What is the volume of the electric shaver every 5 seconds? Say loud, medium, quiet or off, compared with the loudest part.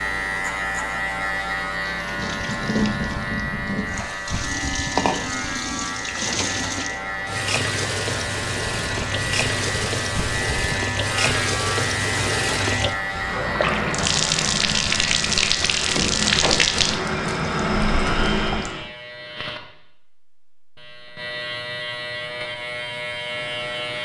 loud, loud, loud, medium, loud.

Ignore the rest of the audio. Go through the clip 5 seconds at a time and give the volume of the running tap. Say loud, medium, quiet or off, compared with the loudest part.
medium, medium, loud, loud, off.